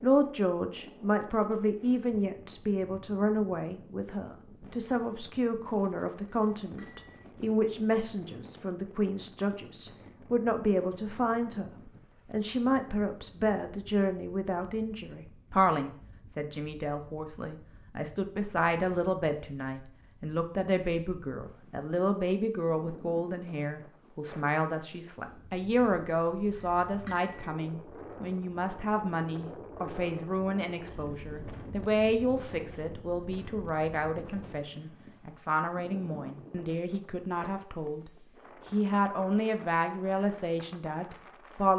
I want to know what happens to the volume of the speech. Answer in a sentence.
The loudness of the speech stays about the same.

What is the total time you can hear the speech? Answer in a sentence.
The speech can be heard for 42 seconds in total.